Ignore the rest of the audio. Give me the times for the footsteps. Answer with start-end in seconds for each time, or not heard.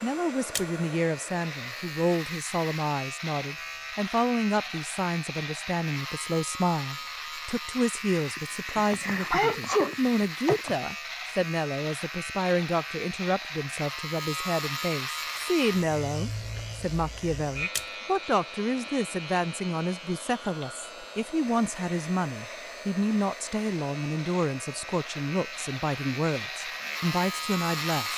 not heard.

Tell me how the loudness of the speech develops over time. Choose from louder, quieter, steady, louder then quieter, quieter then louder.
steady.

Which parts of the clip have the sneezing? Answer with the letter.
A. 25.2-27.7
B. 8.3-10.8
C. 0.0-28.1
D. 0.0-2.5
B.